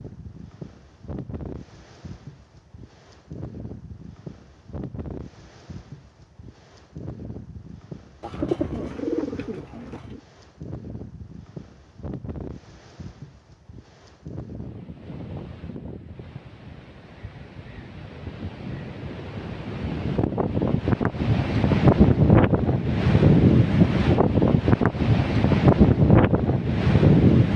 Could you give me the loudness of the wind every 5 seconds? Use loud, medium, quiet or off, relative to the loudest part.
quiet, quiet, quiet, quiet, loud, loud.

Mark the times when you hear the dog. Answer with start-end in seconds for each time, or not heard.
not heard.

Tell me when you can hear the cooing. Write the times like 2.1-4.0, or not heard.
8.2-10.2.